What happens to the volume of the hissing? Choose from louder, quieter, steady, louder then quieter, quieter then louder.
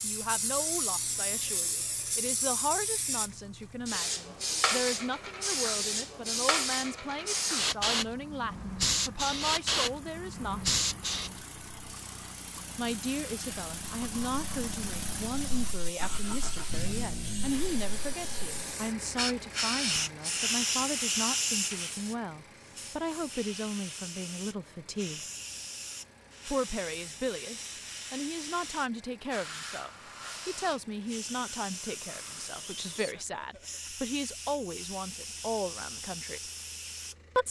quieter.